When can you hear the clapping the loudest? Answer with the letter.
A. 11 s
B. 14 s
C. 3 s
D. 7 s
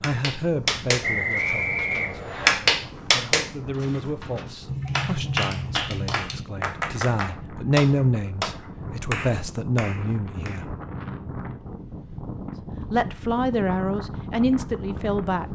C.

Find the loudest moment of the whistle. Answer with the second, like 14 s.
1 s.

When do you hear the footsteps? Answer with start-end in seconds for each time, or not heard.
not heard.